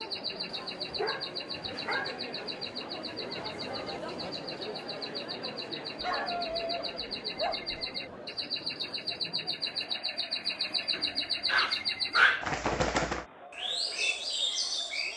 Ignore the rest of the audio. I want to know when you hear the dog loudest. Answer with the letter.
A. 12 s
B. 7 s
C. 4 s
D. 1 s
A.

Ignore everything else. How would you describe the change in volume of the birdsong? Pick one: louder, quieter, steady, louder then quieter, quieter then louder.
louder.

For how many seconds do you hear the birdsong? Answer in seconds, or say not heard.
15 s.